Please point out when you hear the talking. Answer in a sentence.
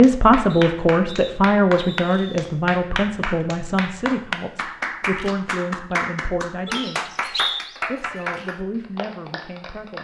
You can hear the talking from 0.0 to 9.9 s.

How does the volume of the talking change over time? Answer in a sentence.
The loudness of the talking goes down.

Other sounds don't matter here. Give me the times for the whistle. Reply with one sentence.
The whistle can be heard from 0.5 to 2.5 s and from 6.7 to 7.6 s.